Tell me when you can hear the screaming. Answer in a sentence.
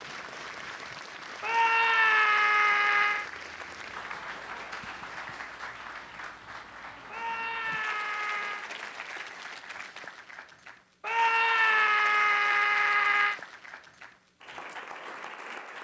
You can hear the screaming from 1.4 to 3.3 s, from 7.1 to 8.7 s and from 11.0 to 13.4 s.